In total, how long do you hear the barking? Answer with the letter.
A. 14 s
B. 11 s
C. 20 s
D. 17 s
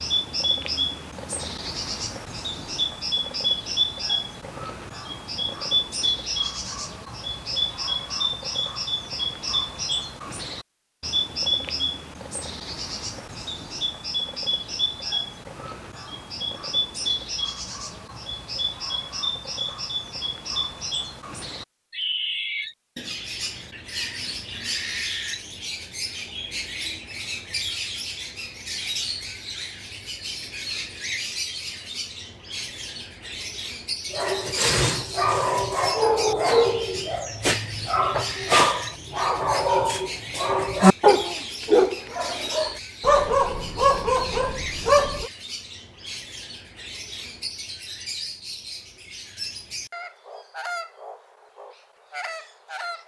B.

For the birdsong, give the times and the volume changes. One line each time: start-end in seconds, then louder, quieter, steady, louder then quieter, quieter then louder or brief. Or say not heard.
0.0-53.0 quieter.